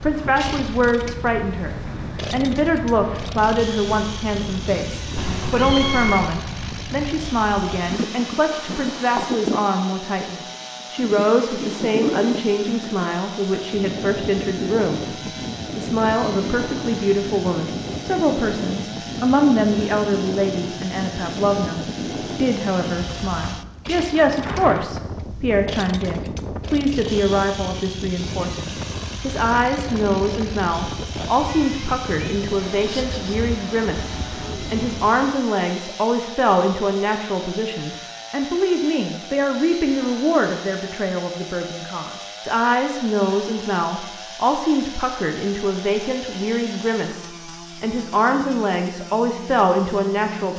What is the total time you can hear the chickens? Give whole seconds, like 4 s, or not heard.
not heard.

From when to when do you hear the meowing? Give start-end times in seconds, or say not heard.
5.2-6.4, 31.4-33.4.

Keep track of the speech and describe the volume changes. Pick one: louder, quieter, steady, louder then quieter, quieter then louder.
steady.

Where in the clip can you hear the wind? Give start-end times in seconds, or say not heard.
0.0-35.4.